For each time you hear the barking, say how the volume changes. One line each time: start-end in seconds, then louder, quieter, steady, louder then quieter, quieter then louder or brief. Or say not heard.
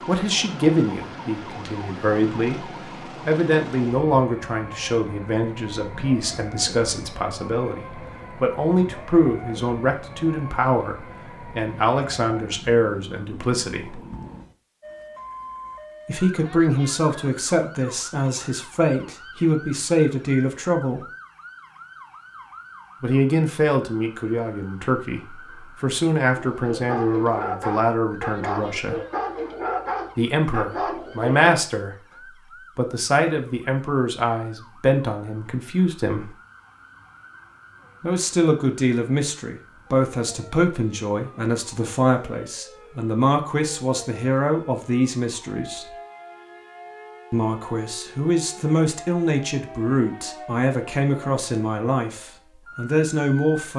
26.4-31.5 steady.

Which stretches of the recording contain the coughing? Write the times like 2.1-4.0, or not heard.
not heard.